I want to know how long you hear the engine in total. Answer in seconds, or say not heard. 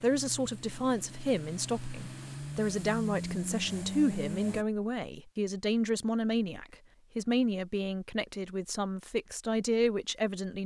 5 s.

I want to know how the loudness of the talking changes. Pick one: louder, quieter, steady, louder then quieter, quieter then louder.
steady.